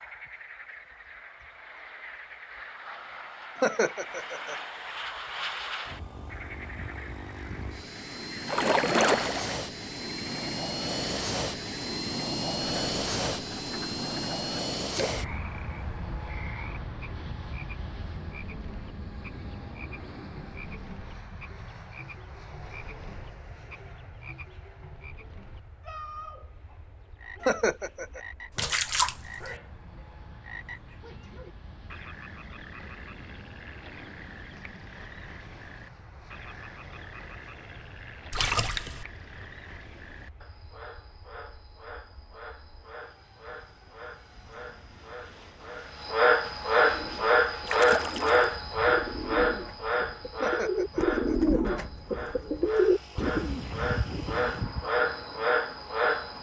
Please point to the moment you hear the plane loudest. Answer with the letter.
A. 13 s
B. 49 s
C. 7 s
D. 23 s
A.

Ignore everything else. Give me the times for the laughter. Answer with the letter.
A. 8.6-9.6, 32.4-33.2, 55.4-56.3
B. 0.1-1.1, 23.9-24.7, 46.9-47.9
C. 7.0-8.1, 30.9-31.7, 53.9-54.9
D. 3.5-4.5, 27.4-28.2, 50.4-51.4
D.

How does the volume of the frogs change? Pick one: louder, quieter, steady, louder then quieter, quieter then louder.
louder.